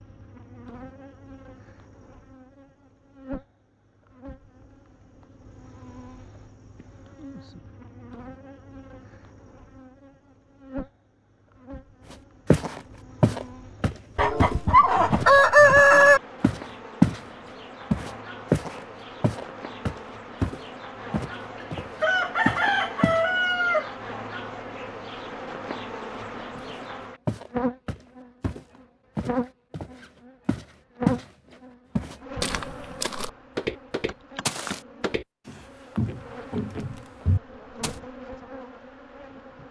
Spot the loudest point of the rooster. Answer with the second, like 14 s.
16 s.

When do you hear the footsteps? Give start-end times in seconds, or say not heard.
12.1-17.2, 17.9-23.2, 26.6-31.2, 31.9-38.0.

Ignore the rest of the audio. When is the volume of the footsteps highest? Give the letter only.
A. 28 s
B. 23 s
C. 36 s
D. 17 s
D.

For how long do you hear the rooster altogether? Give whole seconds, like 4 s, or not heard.
4 s.